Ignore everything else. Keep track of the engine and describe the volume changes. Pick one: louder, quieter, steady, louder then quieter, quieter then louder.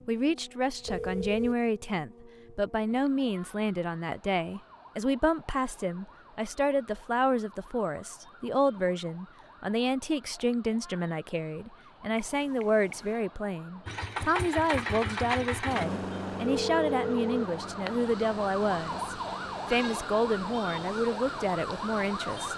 quieter.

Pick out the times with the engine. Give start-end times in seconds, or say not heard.
13.8-19.8.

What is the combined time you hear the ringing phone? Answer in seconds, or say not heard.
3 s.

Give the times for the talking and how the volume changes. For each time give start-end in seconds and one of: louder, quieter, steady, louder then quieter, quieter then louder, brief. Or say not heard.
0.1-22.5 steady.